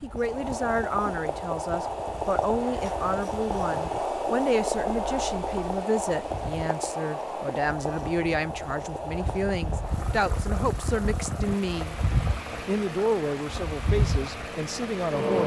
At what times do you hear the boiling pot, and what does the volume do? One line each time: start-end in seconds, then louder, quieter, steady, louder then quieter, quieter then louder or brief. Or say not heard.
0.0-15.2 quieter.